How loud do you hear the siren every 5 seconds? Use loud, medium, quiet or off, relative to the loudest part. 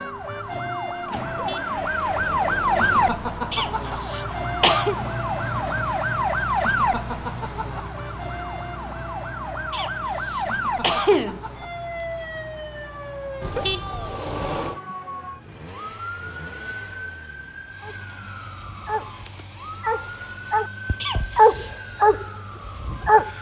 loud, loud, medium, quiet, quiet.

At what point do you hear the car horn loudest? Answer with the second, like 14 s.
14 s.